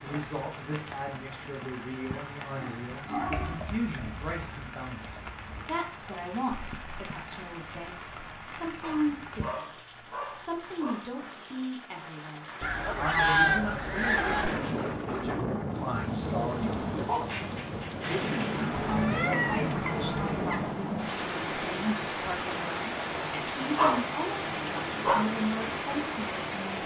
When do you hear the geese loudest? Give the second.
13 s.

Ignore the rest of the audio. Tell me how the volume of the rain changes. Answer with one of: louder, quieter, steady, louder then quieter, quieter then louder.
louder.